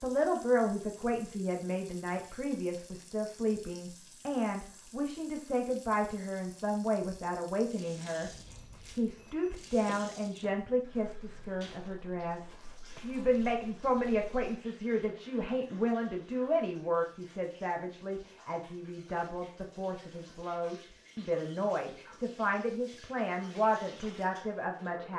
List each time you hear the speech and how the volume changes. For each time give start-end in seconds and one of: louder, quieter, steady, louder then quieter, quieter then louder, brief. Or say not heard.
0.0-25.1 steady.